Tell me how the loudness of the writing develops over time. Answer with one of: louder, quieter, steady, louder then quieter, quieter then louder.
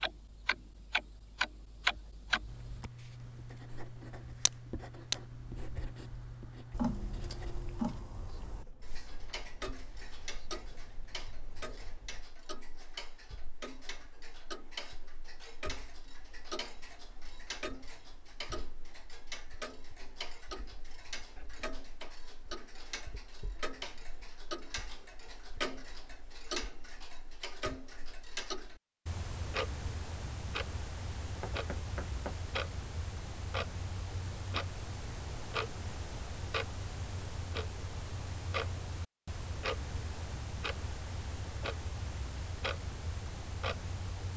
quieter.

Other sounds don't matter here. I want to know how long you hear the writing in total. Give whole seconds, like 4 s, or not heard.
10 s.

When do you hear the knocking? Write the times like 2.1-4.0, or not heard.
31.4-32.5.